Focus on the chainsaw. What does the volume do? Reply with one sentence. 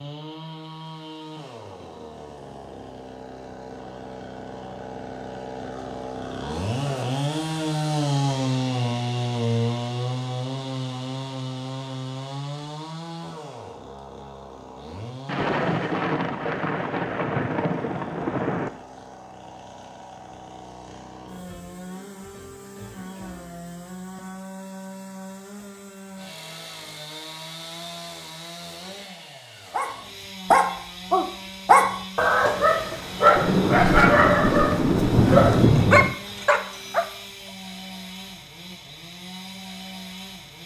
The loudness of the chainsaw goes down.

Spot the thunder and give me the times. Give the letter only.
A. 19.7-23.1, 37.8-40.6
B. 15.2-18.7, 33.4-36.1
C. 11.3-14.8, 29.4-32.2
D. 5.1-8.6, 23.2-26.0
B.